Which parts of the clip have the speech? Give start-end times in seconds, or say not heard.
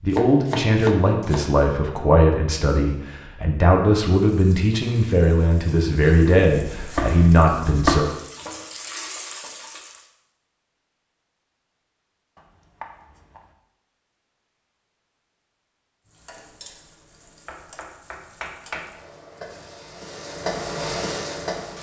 0.0-8.1.